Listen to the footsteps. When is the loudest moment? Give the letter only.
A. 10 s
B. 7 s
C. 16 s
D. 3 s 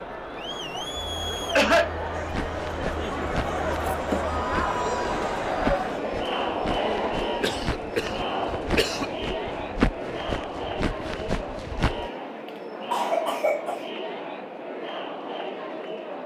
A.